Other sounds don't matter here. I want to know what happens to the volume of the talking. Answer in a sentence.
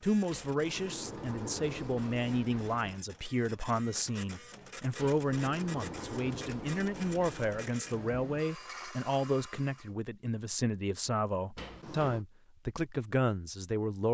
The volume of the talking stays about the same.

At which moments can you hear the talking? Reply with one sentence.
You can hear the talking from 0.0 to 14.0 s.